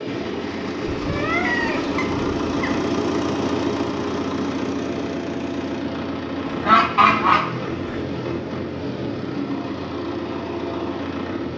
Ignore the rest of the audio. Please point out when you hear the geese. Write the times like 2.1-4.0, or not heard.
0.8-2.8, 6.5-8.0.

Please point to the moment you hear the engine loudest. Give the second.
3 s.